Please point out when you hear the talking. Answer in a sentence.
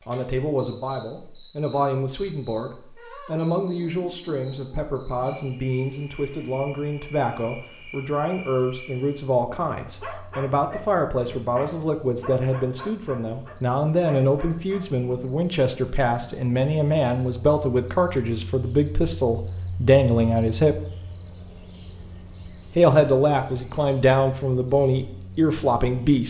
The talking can be heard from 0.1 to 20.8 s and from 22.7 to 26.2 s.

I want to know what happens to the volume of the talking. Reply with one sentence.
The loudness of the talking goes up.